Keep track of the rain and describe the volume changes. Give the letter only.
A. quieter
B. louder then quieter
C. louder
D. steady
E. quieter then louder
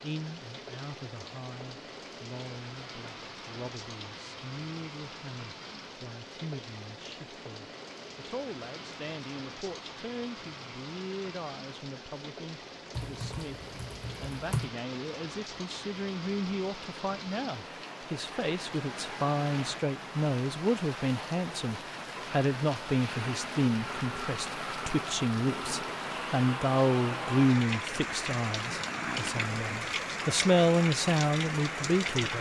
C.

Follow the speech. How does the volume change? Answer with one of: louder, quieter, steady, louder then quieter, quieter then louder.
louder.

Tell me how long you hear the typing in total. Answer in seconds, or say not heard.
2 s.